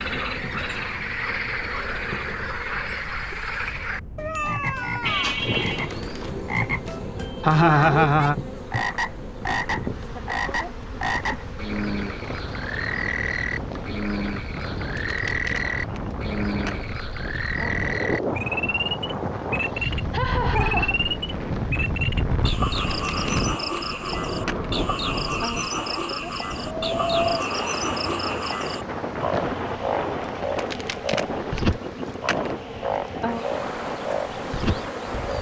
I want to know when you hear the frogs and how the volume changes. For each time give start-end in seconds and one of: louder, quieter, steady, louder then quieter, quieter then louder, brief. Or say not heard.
0.0-35.3 steady.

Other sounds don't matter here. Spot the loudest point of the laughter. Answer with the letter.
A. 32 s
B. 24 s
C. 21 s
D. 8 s
D.